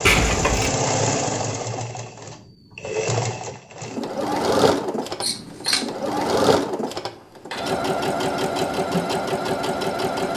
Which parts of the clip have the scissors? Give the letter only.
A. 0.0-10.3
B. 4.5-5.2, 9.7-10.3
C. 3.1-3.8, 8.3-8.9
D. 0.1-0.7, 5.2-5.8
D.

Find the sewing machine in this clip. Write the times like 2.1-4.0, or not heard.
0.0-10.3.